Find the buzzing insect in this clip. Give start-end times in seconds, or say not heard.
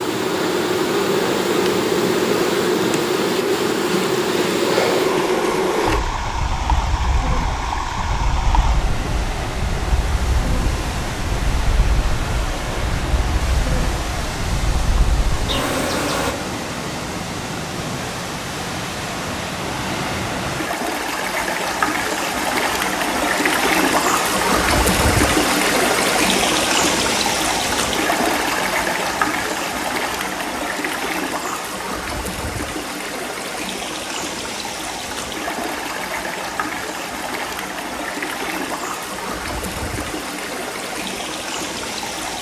0.0-16.4.